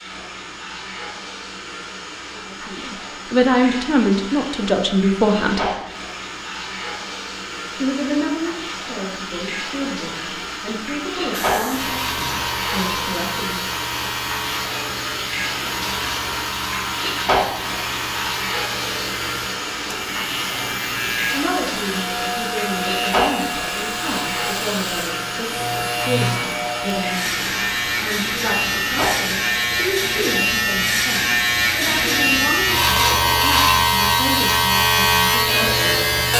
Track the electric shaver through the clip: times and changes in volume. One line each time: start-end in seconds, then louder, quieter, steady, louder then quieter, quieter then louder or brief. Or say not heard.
11.3-36.3 louder.